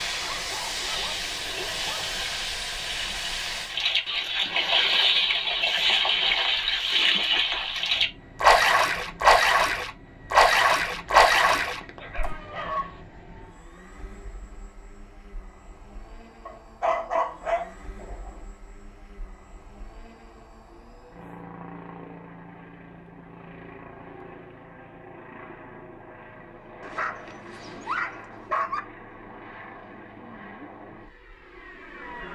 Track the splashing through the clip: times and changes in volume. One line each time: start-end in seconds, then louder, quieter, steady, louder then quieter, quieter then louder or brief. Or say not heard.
0.8-12.3 louder.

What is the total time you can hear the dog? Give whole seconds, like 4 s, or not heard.
8 s.